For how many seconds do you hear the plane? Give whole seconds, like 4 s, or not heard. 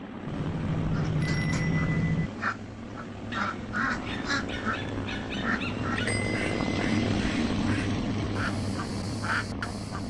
10 s.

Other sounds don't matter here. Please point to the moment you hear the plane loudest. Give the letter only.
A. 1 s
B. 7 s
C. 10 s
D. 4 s
B.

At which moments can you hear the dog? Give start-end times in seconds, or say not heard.
3.3-6.2.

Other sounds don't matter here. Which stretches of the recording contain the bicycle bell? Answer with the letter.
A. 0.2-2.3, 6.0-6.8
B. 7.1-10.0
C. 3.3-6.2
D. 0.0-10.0
A.